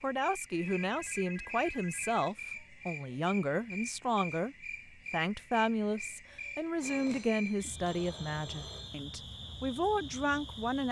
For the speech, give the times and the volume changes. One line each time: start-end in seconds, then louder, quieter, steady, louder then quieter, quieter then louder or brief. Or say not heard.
0.0-10.8 steady.